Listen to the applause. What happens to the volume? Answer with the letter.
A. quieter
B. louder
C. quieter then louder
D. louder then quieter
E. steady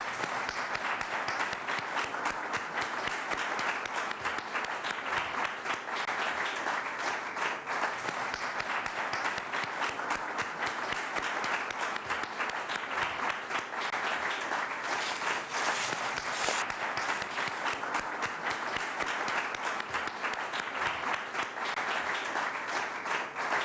E.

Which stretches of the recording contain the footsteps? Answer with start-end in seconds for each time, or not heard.
14.8-17.6.